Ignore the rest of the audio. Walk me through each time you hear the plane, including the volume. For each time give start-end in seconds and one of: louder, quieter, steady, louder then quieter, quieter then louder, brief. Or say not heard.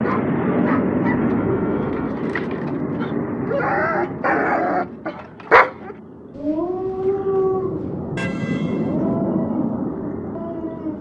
0.0-10.9 quieter then louder.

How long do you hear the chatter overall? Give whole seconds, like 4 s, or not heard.
not heard.